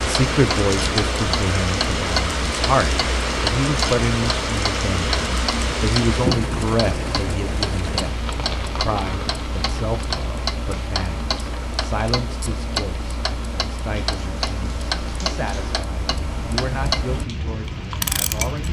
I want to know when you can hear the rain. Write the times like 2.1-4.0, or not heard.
0.0-18.6.